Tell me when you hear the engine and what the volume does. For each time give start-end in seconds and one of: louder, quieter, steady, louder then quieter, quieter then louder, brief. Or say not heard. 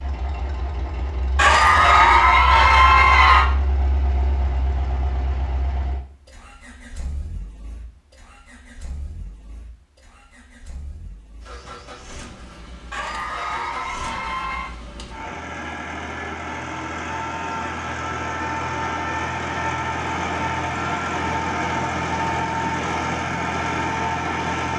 0.0-24.7 quieter then louder.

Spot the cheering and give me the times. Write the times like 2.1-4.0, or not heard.
1.4-3.5, 12.9-14.7.